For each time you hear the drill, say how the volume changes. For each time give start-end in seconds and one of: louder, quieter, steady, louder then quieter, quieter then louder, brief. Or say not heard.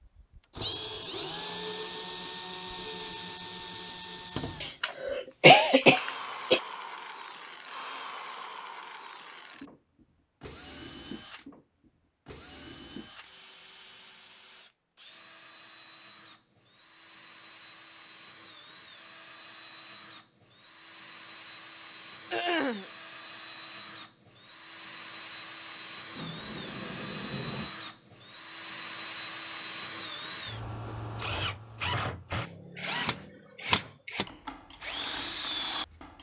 0.0-36.1 quieter then louder.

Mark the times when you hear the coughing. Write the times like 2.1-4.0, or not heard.
4.6-6.6, 22.3-22.9.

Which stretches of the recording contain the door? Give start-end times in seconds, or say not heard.
26.1-27.8.